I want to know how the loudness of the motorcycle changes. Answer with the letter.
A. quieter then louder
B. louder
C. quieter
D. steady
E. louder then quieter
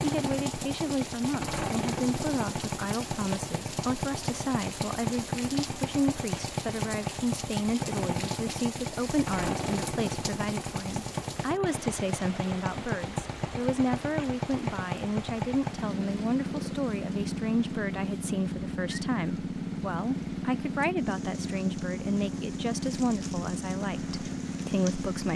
D.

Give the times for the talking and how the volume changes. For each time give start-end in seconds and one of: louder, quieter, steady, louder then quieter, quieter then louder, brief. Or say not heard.
0.0-25.3 steady.